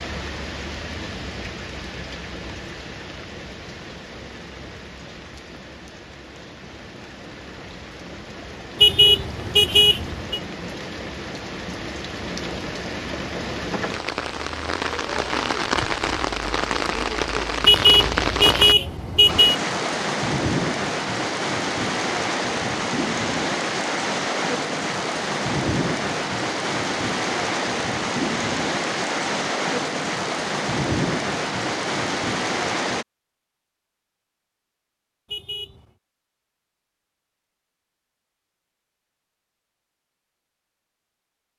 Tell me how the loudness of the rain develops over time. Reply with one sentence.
The loudness of the rain goes up.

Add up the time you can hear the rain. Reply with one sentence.
The rain can be heard for 33 seconds in total.